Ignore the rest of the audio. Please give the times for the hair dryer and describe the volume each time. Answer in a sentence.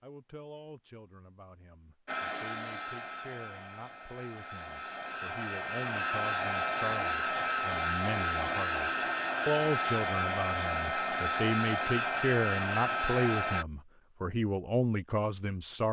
The hair dryer can be heard from 2.0 to 13.7 s, getting louder.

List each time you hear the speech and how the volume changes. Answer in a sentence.
The speech can be heard from 0.0 to 15.8 s, getting louder.